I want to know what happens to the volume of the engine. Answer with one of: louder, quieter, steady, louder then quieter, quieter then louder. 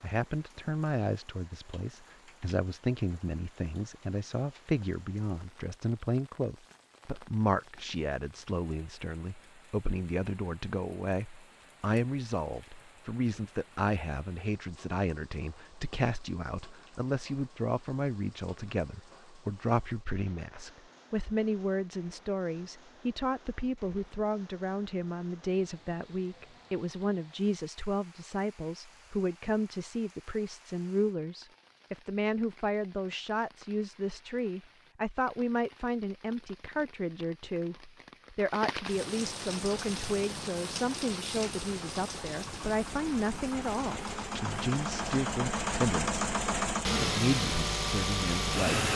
louder.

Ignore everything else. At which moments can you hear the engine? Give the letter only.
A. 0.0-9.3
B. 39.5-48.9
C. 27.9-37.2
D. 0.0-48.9
B.